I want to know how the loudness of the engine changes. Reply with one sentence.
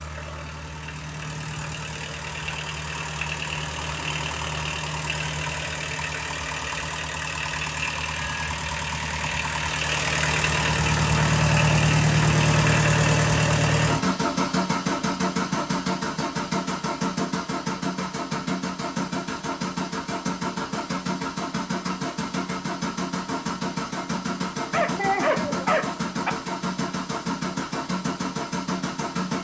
The loudness of the engine goes up, then down.